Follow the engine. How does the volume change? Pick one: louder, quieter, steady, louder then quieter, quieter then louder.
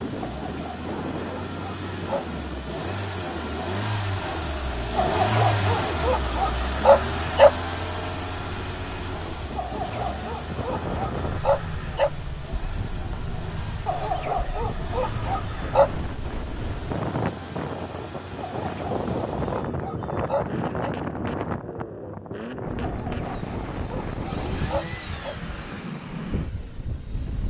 quieter.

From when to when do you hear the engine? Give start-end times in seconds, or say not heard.
0.0-27.4.